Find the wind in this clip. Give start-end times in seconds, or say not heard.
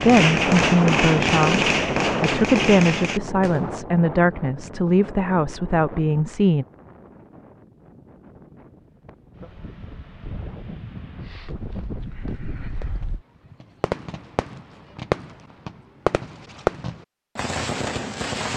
0.0-13.2.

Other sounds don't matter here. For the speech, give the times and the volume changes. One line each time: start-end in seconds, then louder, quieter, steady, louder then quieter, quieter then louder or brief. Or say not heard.
0.0-6.7 steady.